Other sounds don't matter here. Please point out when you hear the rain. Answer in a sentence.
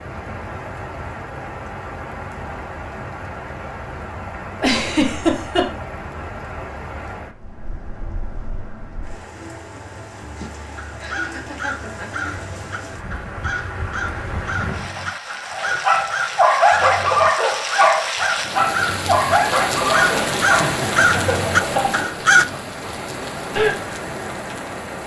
You can hear the rain from 0.0 to 25.0 s.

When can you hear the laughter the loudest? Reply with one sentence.
The loudest moment of the laughter is at 5 seconds.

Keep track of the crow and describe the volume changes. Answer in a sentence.
The volume of the crow goes up.